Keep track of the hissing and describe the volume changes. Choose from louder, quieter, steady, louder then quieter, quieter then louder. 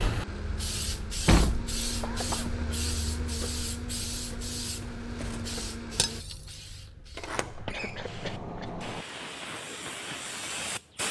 quieter then louder.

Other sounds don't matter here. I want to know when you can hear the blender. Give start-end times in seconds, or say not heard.
0.1-6.2.